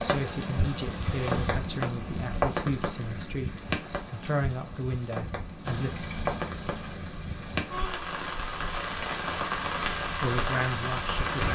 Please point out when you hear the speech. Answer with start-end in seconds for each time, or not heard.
0.0-5.9, 10.2-11.4.